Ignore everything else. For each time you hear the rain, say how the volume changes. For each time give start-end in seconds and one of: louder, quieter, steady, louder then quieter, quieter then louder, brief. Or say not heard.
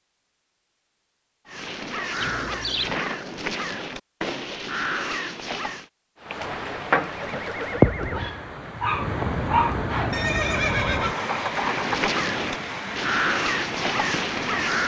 6.2-14.8 quieter.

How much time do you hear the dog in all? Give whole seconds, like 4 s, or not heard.
2 s.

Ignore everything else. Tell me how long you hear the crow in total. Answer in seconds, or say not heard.
8 s.